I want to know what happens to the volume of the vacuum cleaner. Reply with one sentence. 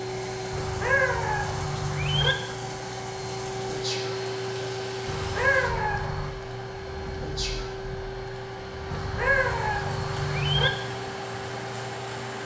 The volume of the vacuum cleaner stays about the same.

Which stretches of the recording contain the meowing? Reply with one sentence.
The meowing can be heard from 0.5 to 2.4 s, from 5.0 to 6.3 s and from 8.8 to 10.7 s.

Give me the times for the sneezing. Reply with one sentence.
You can hear the sneezing from 3.6 to 4.1 s and from 7.2 to 7.7 s.